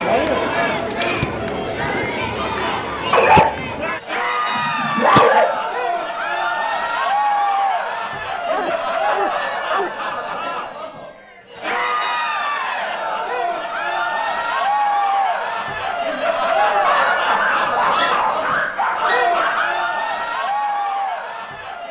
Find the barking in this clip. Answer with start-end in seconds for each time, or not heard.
3.1-3.8, 4.5-5.5, 8.3-10.0, 16.8-19.8.